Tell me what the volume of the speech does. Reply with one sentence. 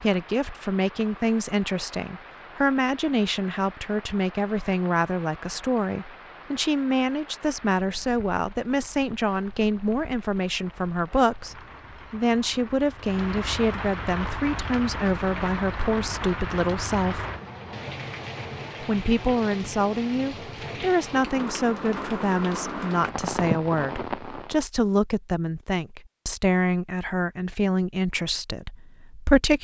The loudness of the speech stays about the same.